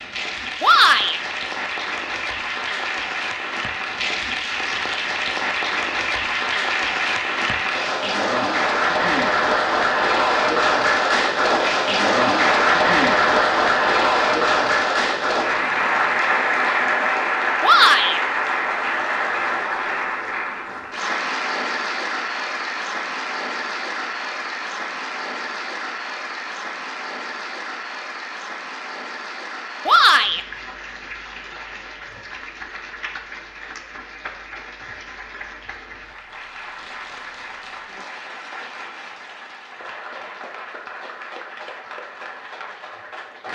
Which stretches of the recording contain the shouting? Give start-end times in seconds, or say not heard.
0.6-1.2, 17.6-18.2, 29.9-30.4.